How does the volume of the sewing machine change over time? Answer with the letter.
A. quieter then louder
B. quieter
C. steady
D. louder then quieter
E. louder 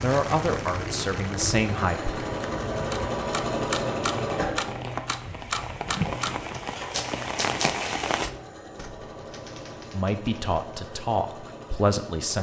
B.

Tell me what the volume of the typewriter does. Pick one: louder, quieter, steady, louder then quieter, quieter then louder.
quieter.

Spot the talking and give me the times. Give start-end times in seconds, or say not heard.
0.0-2.1, 9.9-12.3.